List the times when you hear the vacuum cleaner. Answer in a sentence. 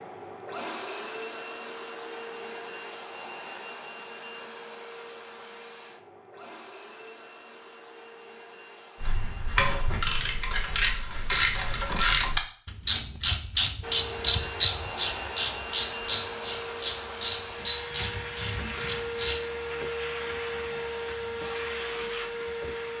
You can hear the vacuum cleaner from 0.0 to 10.7 s and from 13.8 to 22.9 s.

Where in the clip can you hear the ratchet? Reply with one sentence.
The ratchet can be heard from 9.0 to 19.4 s.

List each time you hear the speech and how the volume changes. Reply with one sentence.
The speech can't be heard in this clip.